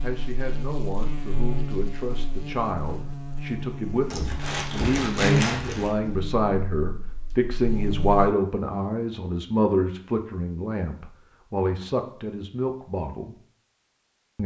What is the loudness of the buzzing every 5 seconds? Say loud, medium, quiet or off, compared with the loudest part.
medium, loud, off.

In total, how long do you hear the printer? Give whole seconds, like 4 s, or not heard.
not heard.